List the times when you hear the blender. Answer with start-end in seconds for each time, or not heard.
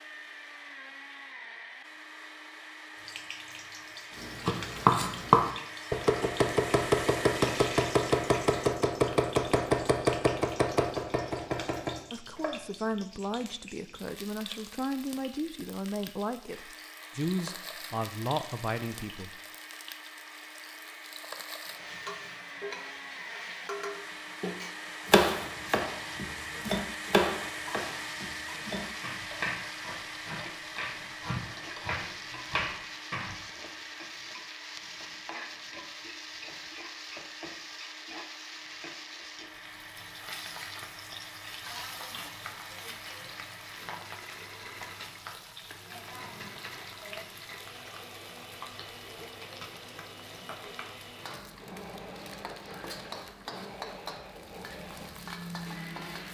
0.0-8.8, 16.4-56.2.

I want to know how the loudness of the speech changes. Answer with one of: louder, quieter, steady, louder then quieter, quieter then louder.
steady.